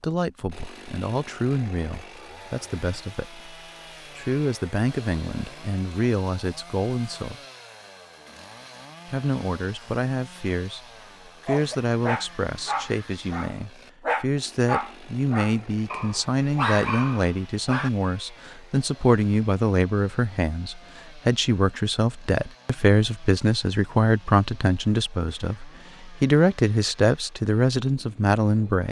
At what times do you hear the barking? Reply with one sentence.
You can hear the barking from 11.4 to 17.9 s.